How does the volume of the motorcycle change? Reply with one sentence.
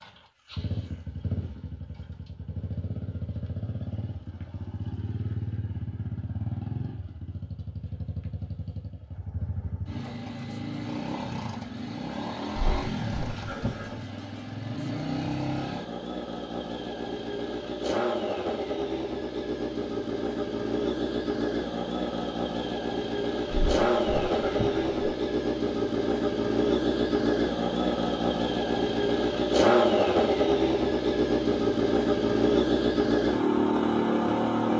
The volume of the motorcycle goes up.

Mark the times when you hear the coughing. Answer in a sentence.
The coughing can be heard from 12.6 to 13.9 s and from 23.5 to 25.1 s.